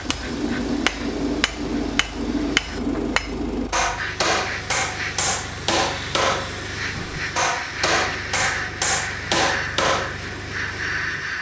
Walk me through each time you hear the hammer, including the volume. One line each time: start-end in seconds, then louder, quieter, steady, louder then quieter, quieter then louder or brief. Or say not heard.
0.0-10.2 steady.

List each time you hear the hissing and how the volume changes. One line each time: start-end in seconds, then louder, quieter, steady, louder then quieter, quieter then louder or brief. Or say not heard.
0.0-11.3 louder.